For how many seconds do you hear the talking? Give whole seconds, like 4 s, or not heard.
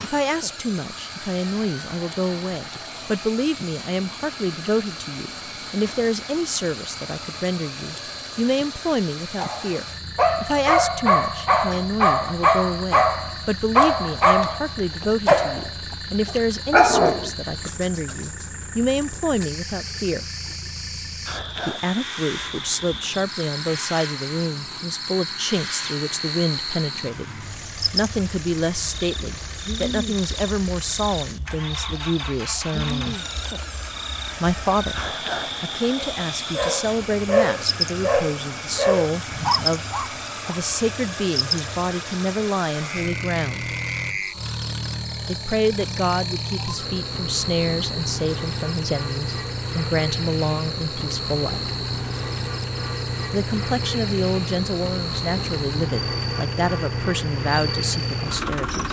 53 s.